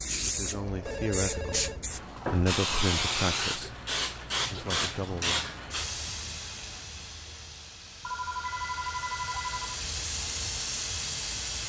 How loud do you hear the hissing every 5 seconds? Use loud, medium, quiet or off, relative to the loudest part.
loud, medium, loud.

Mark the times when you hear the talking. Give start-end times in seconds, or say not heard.
0.2-1.7, 2.3-3.8, 4.5-5.5.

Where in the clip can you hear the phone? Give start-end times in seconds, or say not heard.
0.8-2.3, 8.0-9.8.